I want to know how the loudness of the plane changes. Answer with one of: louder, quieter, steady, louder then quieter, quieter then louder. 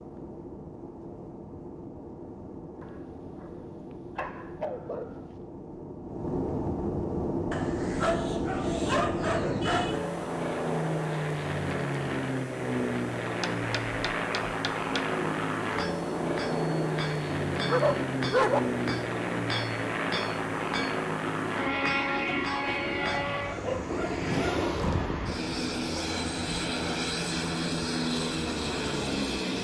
louder.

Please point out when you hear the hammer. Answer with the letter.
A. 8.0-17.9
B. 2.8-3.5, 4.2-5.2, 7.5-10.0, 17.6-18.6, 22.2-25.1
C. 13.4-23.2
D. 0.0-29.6
C.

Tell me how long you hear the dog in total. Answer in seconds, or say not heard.
8 s.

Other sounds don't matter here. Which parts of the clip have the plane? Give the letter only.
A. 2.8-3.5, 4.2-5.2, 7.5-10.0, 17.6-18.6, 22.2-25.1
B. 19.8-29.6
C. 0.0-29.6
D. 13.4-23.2
C.